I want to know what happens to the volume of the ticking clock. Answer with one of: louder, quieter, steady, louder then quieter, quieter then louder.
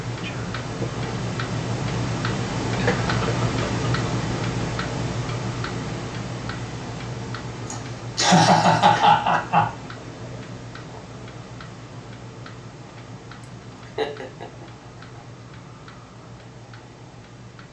quieter.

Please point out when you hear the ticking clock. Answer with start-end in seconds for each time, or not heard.
0.0-17.6.